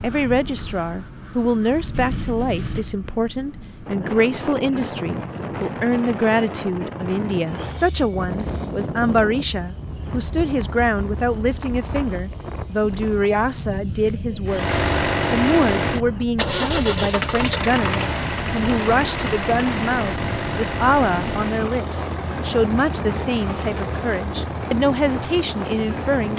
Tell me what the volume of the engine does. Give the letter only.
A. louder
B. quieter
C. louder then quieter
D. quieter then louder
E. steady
B.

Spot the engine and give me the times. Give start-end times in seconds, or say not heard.
14.4-26.3.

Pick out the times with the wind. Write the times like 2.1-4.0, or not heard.
0.0-26.3.